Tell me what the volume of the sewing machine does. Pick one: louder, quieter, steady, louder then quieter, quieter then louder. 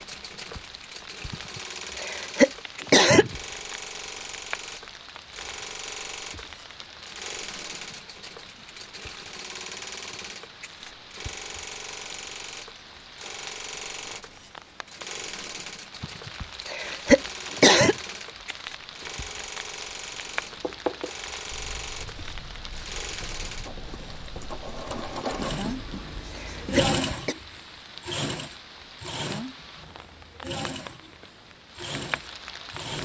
louder.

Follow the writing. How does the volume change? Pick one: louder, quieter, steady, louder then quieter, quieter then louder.
quieter then louder.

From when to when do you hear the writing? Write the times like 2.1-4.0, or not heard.
20.3-26.9.